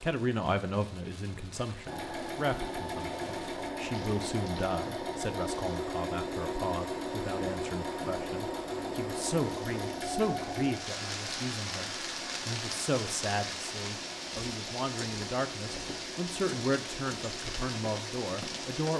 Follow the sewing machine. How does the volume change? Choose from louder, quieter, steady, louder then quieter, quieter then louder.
quieter.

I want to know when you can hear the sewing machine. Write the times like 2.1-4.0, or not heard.
1.9-18.8.